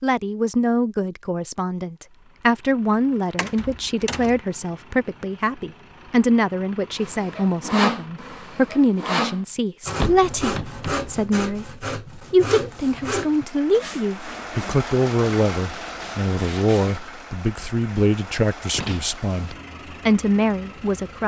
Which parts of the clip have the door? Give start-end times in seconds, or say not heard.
3.4-4.4, 9.9-11.2, 18.7-19.6.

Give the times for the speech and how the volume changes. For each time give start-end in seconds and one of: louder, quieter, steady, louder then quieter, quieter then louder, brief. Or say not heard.
0.0-21.2 steady.